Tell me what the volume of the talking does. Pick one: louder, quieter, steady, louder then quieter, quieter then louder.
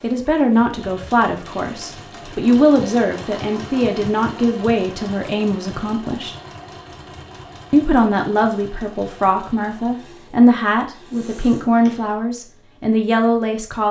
steady.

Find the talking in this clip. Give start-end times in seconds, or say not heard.
0.0-6.3, 7.7-13.8.